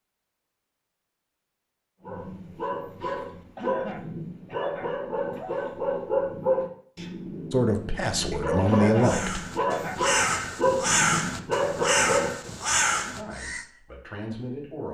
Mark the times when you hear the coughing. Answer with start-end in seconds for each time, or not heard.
3.5-5.6, 8.7-10.1.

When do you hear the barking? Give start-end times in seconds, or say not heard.
2.0-12.5.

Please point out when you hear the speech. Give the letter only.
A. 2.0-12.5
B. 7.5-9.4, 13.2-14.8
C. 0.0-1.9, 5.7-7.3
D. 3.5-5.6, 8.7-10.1
B.